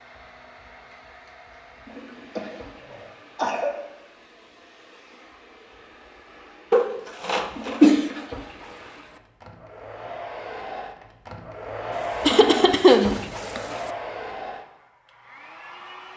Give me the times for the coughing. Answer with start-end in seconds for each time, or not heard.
2.4-3.7, 6.7-8.2, 12.2-13.6.